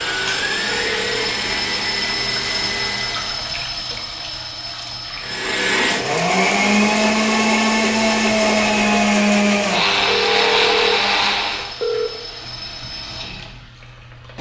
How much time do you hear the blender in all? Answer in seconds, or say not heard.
10 s.